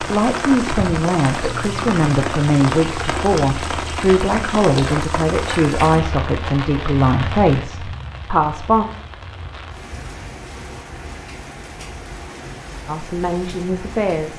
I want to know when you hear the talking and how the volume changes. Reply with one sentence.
You can hear the talking from 0.0 to 8.8 s, at a steady volume; and briefly from 12.8 to 14.3 s.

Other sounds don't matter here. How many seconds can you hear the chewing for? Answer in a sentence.
The chewing can't be heard in this clip.